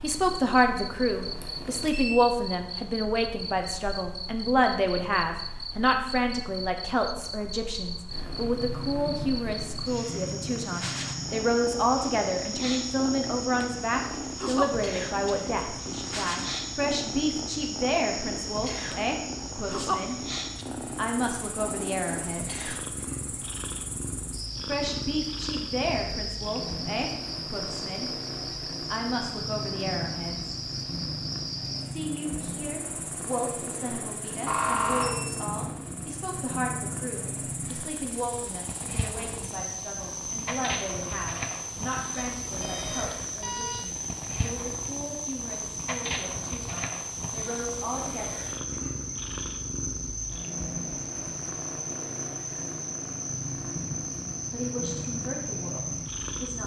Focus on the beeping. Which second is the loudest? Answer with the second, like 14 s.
35 s.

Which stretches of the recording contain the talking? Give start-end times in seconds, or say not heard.
0.0-20.1, 20.9-22.6, 24.6-28.1, 28.9-30.6, 31.8-48.4, 54.5-56.6.